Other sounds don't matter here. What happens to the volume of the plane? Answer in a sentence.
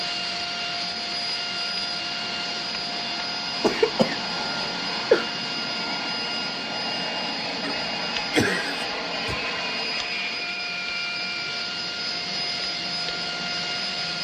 The volume of the plane stays about the same.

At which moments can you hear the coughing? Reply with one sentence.
You can hear the coughing from 3.6 to 5.3 s and from 7.6 to 9.4 s.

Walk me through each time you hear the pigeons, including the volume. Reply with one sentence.
You can't hear the pigeons here.